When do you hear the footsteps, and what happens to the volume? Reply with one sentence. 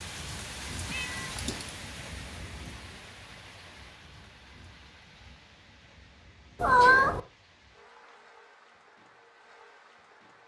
You can't hear the footsteps here.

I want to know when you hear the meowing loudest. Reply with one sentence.
The loudest moment of the meowing is at 7 seconds.